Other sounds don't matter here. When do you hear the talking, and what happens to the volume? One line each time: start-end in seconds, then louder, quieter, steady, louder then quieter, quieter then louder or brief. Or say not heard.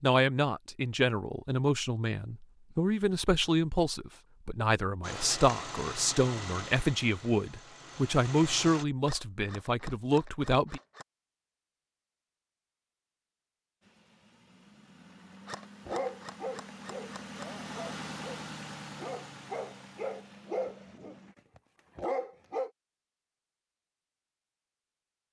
0.0-10.8 steady.